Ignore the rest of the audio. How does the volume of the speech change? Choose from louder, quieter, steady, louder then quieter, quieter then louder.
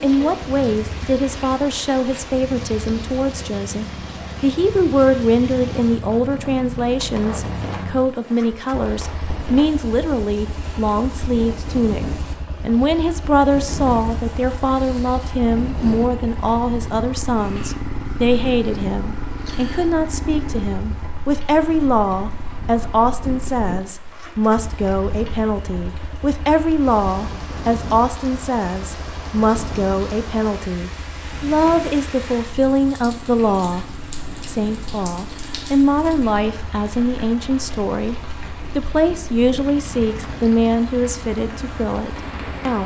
steady.